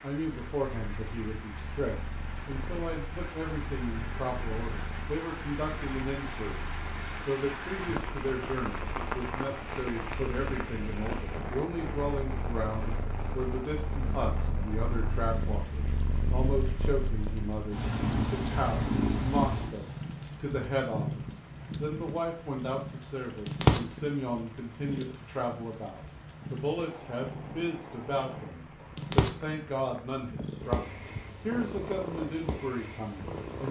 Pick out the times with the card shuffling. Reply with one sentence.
You can't hear the card shuffling here.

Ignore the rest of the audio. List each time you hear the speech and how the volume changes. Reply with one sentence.
The speech can be heard from 0.0 to 33.6 s, at a steady volume.